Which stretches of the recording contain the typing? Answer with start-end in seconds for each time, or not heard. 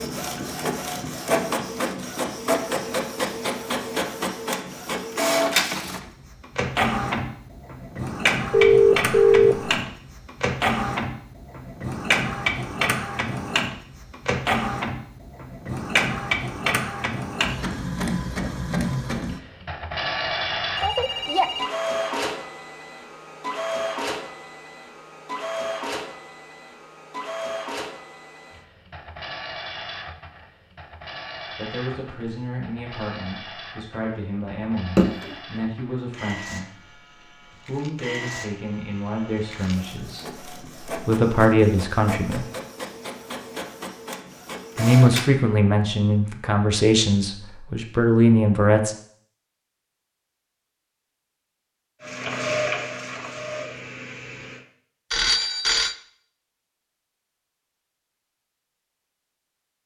not heard.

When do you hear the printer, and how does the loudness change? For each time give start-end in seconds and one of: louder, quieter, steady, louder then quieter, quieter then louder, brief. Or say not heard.
0.0-45.3 quieter
52.0-54.6 brief.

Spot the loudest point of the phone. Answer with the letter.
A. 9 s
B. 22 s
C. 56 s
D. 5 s
A.